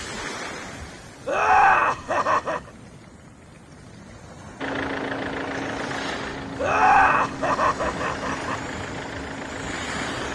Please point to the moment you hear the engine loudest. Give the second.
5 s.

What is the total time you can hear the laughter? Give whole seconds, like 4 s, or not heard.
3 s.